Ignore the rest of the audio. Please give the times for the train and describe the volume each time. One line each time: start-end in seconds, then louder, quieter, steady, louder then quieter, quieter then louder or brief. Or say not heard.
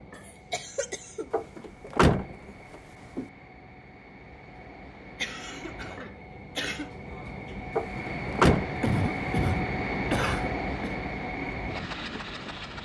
0.0-12.8 louder.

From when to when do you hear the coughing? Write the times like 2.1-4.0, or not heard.
0.2-1.3, 5.2-6.9, 8.8-10.9.